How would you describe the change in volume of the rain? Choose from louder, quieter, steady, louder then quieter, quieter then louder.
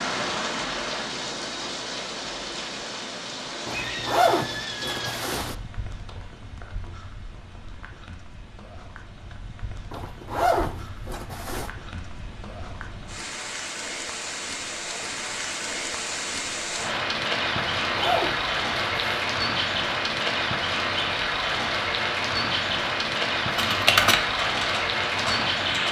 quieter then louder.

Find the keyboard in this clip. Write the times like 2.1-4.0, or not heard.
23.6-25.8.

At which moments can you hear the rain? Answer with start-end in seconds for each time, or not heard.
0.0-25.8.